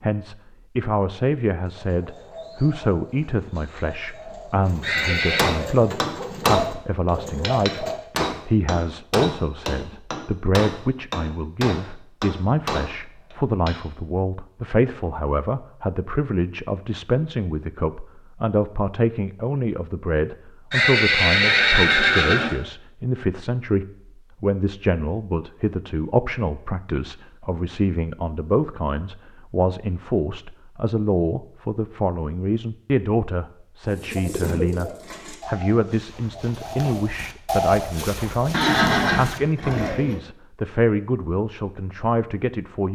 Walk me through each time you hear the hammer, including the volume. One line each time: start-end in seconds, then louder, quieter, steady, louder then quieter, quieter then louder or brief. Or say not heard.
5.0-13.8 quieter.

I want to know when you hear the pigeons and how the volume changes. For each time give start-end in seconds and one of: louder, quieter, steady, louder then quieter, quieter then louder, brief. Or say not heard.
1.6-8.0 louder
33.9-40.2 quieter then louder.